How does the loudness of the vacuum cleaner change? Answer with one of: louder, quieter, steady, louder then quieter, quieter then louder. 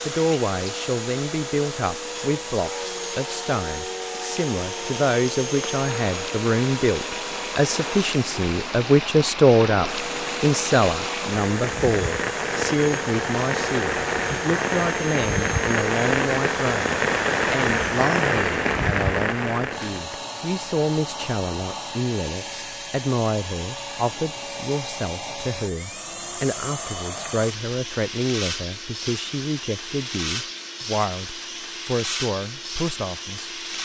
steady.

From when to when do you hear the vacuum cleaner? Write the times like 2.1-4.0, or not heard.
0.0-33.8.